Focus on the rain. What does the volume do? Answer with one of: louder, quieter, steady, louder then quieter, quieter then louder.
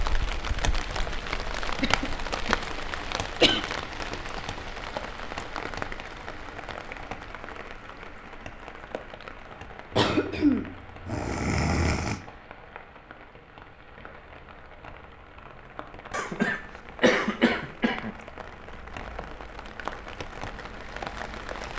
quieter then louder.